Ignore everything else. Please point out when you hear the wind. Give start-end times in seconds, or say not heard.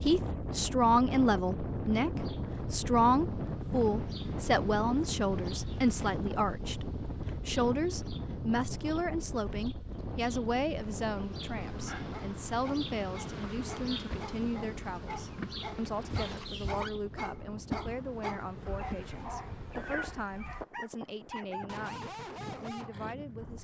0.0-23.5.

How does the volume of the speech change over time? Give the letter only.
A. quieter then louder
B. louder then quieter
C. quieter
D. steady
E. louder
C.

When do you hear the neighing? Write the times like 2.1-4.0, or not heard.
16.1-16.9.